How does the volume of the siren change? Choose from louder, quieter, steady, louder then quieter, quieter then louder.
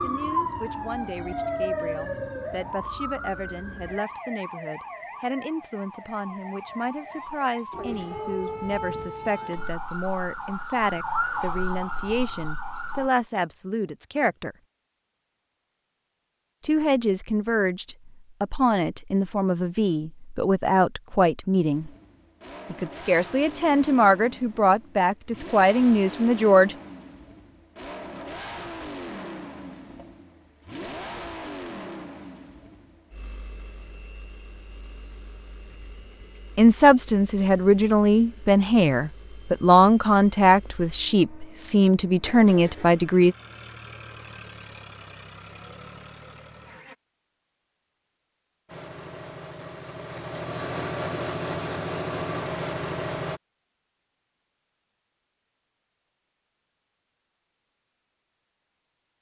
quieter then louder.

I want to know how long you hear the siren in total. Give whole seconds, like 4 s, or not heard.
13 s.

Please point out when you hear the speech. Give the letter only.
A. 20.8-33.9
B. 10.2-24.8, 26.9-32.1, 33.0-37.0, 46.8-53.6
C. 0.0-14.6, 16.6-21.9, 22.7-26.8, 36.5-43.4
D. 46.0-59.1
C.